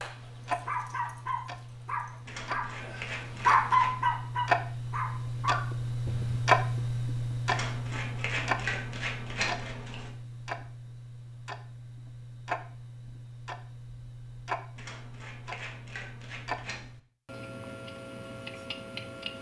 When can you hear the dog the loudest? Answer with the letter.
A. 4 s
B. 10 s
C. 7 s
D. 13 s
A.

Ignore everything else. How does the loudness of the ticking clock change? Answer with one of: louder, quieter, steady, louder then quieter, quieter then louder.
louder then quieter.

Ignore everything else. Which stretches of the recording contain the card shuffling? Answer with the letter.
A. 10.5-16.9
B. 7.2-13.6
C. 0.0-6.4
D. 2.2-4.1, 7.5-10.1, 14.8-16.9
D.